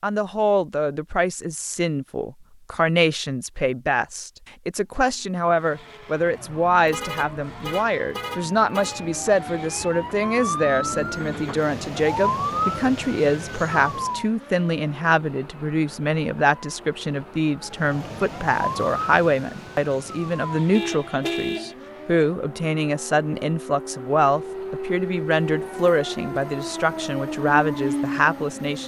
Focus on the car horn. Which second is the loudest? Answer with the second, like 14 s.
21 s.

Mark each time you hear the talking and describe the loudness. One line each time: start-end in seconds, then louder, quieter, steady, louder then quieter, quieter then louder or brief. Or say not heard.
0.0-28.8 steady.